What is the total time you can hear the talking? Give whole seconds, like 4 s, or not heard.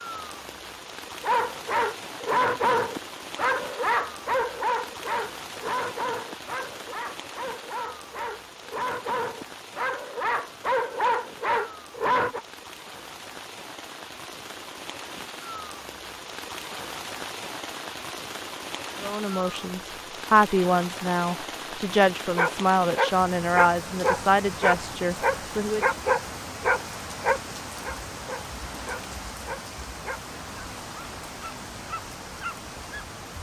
7 s.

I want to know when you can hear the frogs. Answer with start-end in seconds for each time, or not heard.
not heard.